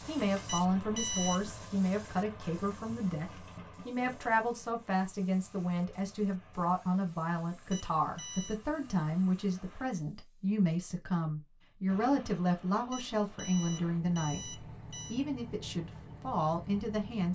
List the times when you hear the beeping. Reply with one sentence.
You can hear the beeping from 0.5 to 1.5 s, from 7.7 to 8.6 s and from 12.9 to 15.2 s.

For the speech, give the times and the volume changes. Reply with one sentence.
You can hear the speech from 0.1 to 17.2 s, at a steady volume.